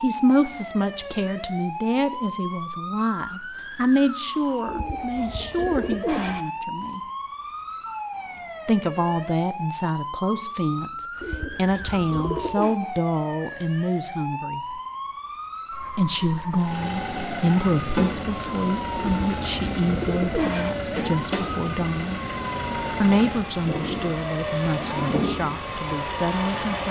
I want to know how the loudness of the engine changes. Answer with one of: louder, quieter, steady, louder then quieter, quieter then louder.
steady.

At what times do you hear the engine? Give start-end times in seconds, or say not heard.
16.6-26.8.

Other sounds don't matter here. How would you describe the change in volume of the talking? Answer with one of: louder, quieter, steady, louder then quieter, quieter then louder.
steady.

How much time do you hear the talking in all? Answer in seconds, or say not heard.
23 s.